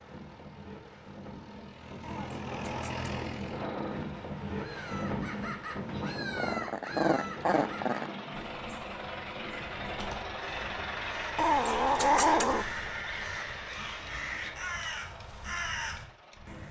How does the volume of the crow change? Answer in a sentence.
The volume of the crow goes down, then up.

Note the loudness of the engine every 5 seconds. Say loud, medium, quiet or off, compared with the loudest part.
loud, loud, loud, quiet.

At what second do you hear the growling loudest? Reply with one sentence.
The loudest moment of the growling is at 12 seconds.